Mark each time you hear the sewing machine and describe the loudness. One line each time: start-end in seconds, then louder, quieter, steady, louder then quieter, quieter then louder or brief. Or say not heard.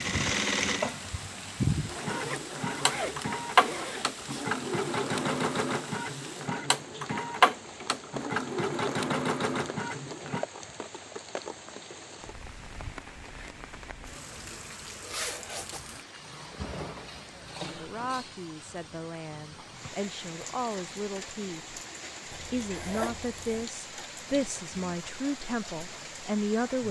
0.0-10.4 steady.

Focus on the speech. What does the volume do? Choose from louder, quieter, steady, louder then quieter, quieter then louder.
louder.